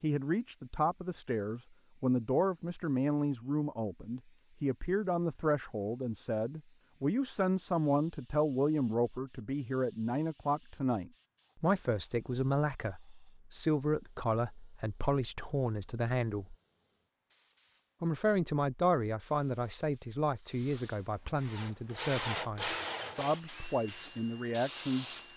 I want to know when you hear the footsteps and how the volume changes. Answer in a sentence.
The footsteps can't be heard in this clip.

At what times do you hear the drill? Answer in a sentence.
You can hear the drill from 21.4 to 25.3 s.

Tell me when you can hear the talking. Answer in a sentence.
The talking can be heard from 0.0 to 16.6 s and from 18.0 to 25.1 s.